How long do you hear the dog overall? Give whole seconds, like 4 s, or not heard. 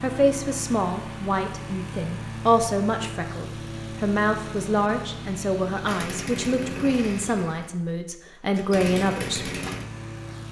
not heard.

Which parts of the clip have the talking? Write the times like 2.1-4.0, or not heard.
0.0-9.5.